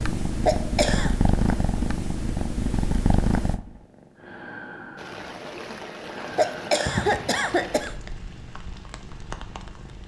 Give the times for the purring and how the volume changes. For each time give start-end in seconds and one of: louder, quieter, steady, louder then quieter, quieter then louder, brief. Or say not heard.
0.0-10.0 quieter.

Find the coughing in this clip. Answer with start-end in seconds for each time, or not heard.
0.5-1.1, 6.3-7.9.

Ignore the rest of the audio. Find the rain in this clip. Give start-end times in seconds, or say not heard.
5.0-10.0.